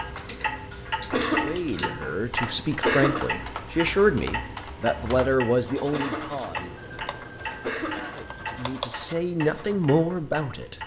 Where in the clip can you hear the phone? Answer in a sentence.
The phone can be heard from 6.8 to 8.8 s.